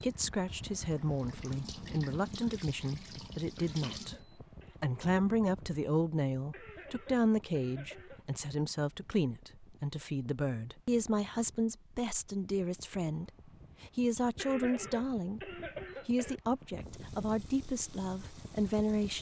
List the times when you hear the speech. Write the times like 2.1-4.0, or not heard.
0.0-4.2, 4.8-19.1.